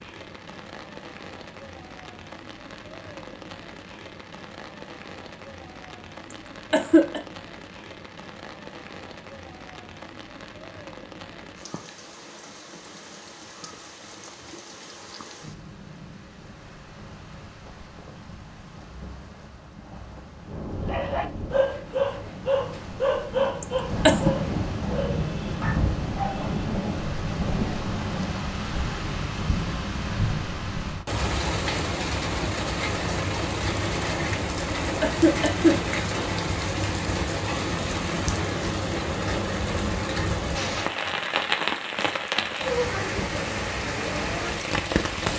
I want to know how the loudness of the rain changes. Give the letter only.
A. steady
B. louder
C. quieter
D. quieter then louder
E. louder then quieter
B.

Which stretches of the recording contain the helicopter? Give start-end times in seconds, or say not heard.
not heard.